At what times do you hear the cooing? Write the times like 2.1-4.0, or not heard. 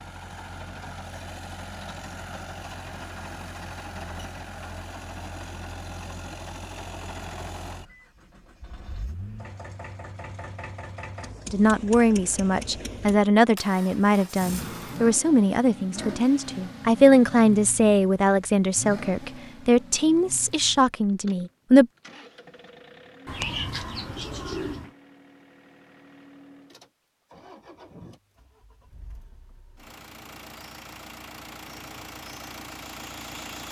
23.2-24.9.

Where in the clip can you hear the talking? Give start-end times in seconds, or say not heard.
11.5-21.9.